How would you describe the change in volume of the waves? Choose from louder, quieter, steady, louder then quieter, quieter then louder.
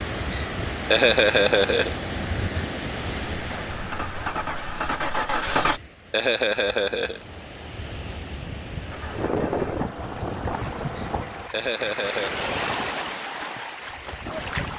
quieter then louder.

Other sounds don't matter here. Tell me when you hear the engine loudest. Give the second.
5 s.